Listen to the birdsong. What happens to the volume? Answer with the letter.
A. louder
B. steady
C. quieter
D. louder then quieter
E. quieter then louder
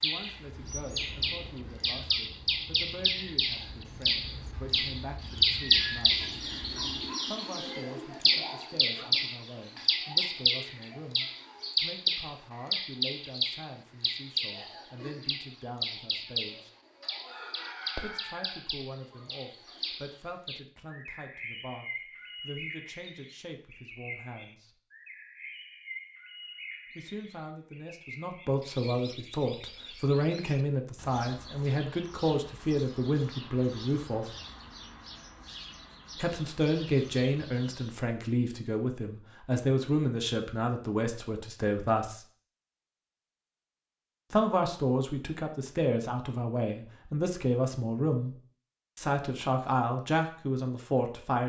C.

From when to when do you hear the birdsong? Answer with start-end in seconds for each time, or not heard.
0.0-38.0.